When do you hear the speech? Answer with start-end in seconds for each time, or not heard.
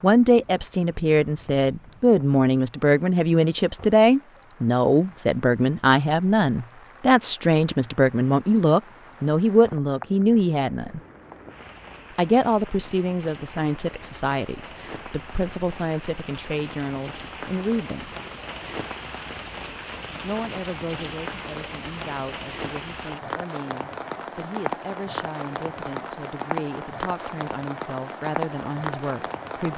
0.0-11.0, 12.2-18.1, 20.2-29.7.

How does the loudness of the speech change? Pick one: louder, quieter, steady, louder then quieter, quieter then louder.
quieter.